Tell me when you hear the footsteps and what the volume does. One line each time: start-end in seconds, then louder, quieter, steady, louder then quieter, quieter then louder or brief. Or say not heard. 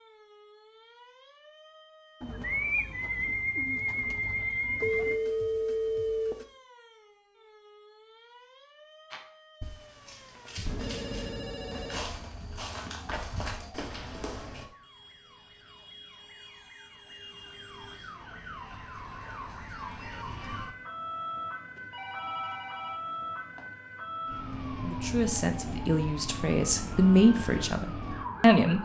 9.1-14.7 louder.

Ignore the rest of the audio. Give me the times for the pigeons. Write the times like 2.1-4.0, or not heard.
2.2-5.2.